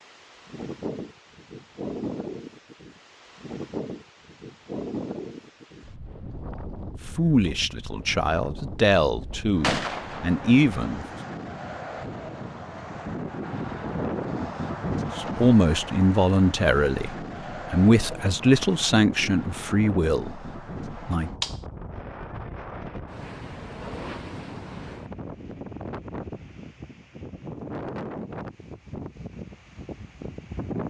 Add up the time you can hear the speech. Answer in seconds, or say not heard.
10 s.